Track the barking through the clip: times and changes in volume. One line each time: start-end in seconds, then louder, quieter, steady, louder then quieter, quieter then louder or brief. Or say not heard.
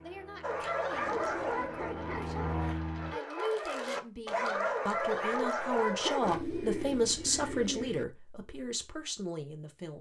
0.4-6.4 quieter then louder.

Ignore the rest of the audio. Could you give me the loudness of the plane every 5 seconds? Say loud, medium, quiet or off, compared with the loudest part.
loud, off.